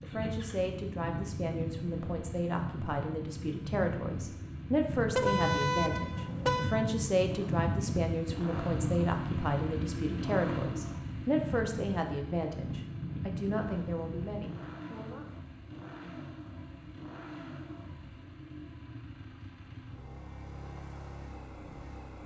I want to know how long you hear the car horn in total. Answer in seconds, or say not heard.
2 s.